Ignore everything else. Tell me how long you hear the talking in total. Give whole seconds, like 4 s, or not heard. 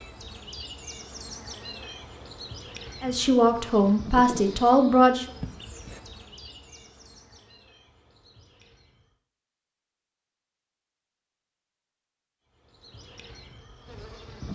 2 s.